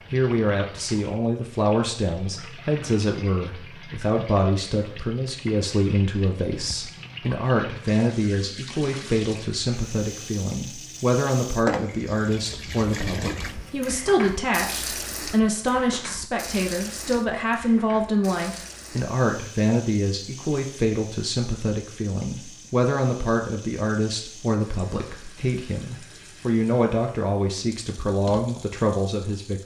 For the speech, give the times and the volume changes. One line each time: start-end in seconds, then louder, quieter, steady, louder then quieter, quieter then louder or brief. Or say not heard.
0.1-29.6 steady.